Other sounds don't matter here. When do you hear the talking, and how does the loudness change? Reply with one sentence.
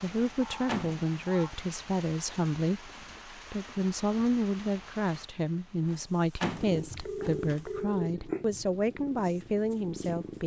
The talking can be heard from 0.0 to 10.4 s, at a steady volume.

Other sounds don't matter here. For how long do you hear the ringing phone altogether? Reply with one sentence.
The ringing phone can be heard for 3 seconds in total.